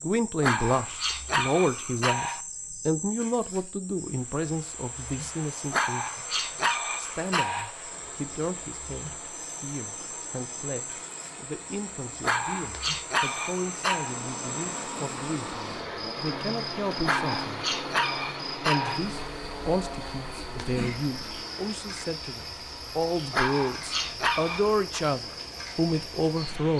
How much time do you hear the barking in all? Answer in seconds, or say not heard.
10 s.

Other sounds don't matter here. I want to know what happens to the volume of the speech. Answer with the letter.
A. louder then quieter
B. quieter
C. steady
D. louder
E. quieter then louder
E.